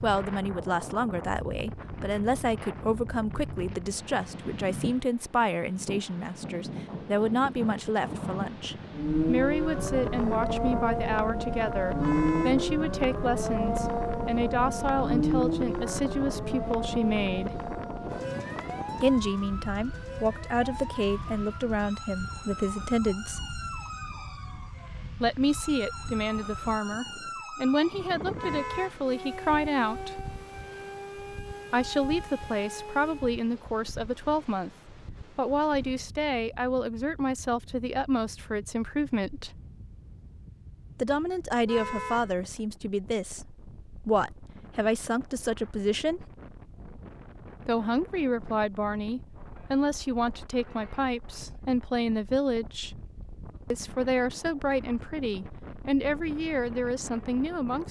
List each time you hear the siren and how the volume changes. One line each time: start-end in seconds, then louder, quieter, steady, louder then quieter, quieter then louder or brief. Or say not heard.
8.9-33.4 quieter.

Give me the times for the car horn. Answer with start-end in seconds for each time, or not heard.
11.9-12.7, 28.4-29.0, 41.6-42.4.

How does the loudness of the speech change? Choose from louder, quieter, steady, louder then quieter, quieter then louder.
steady.